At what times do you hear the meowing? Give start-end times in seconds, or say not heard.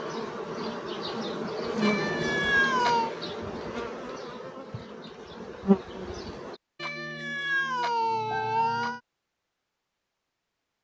1.8-3.1, 6.8-9.0.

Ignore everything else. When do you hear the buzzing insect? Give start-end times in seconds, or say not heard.
0.0-6.5.